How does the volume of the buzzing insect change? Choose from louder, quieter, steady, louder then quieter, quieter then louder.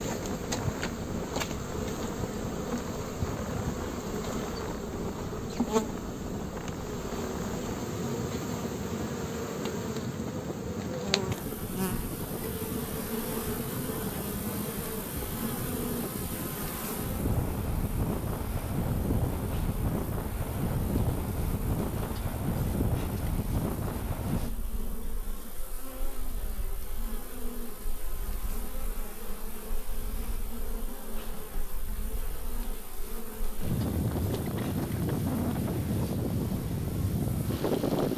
quieter.